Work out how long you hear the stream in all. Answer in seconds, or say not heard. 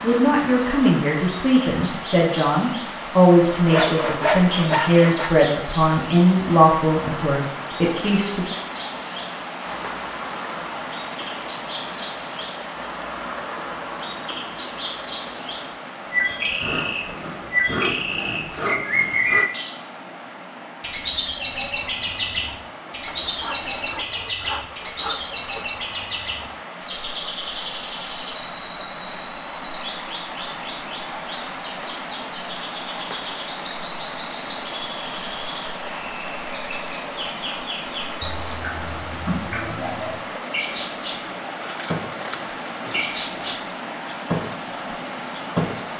46 s.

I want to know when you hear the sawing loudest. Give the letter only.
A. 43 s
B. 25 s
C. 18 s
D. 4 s
D.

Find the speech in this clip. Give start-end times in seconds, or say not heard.
0.0-8.4.